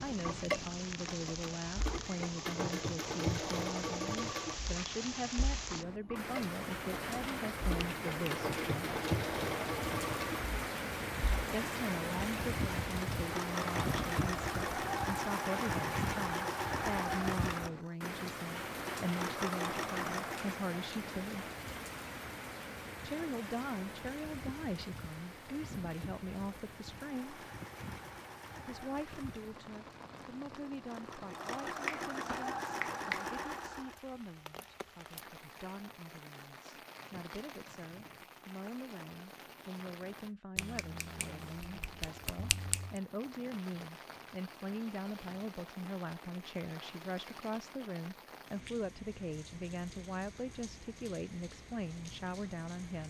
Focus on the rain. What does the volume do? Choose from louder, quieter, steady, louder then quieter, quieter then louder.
quieter.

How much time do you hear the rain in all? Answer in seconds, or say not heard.
53 s.